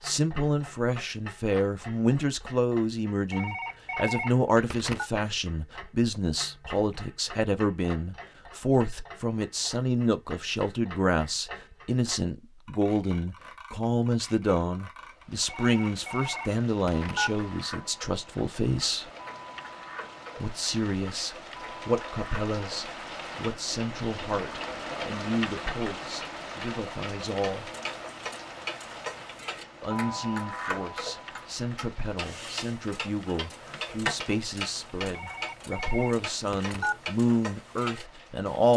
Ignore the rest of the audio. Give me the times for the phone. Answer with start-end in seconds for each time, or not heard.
3.3-5.1, 15.4-17.4, 35.1-37.0.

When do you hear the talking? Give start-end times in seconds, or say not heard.
0.0-19.1, 20.4-27.7, 29.8-38.7.